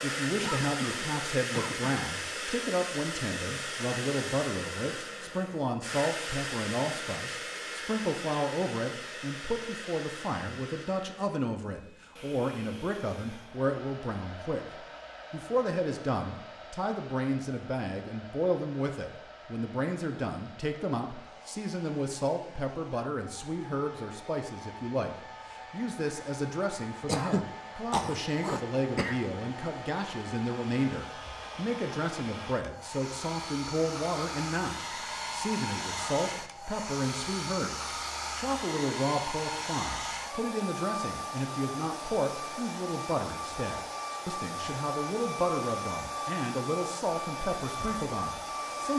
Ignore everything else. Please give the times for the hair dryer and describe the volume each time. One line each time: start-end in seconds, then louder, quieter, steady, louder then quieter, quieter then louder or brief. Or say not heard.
0.0-48.9 quieter then louder.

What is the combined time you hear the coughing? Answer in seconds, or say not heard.
4 s.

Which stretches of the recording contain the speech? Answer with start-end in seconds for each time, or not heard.
0.0-48.9.